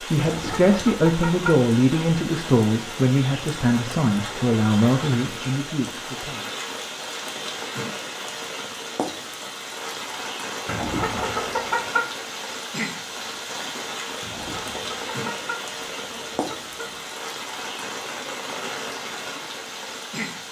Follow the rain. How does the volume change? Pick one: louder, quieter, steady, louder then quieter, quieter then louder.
steady.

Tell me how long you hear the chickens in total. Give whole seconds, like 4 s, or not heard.
6 s.